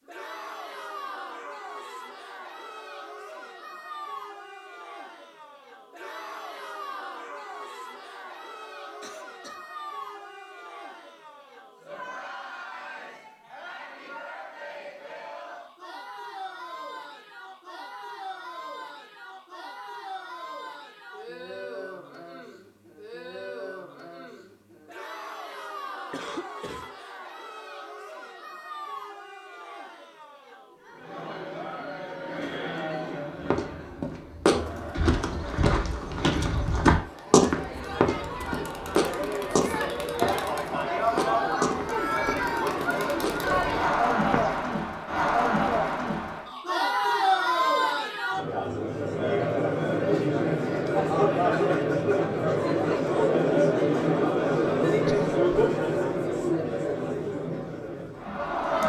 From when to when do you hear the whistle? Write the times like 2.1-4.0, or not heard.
not heard.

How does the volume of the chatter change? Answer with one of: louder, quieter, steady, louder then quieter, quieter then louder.
louder.